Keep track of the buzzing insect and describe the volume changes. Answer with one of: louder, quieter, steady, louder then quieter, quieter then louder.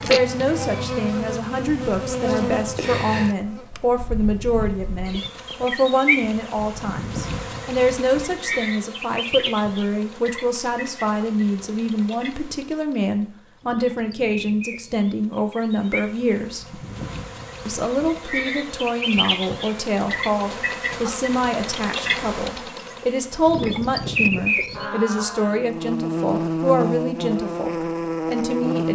quieter then louder.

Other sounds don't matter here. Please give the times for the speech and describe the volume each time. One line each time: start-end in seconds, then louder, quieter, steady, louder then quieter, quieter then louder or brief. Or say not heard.
0.0-16.8 steady
17.6-28.9 steady.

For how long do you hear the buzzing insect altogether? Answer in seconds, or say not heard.
29 s.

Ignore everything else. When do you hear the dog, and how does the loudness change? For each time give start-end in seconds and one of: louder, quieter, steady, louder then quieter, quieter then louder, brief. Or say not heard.
not heard.